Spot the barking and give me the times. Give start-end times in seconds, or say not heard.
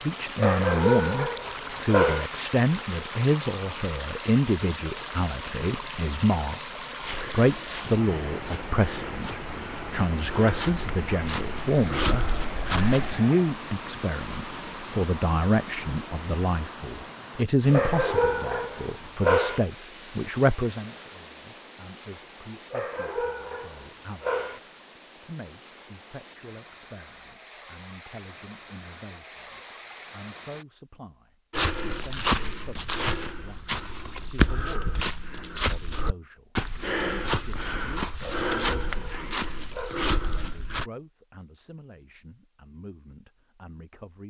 0.3-2.3, 17.7-19.6, 22.7-24.6, 38.2-40.0.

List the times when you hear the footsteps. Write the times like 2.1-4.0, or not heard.
7.0-13.2, 31.5-40.9.